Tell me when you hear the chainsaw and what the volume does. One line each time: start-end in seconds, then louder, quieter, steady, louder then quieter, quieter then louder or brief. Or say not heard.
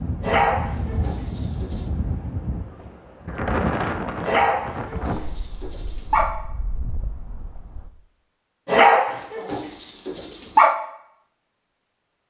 not heard.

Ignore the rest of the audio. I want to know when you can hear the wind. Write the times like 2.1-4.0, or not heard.
0.0-7.9.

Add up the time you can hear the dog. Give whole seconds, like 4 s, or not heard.
6 s.